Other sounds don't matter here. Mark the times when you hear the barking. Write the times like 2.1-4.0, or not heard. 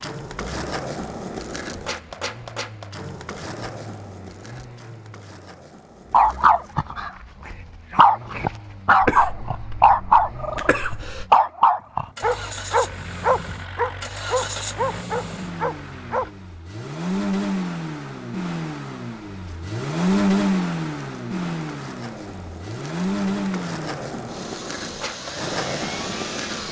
6.1-16.3.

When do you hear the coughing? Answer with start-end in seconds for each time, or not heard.
9.0-11.2.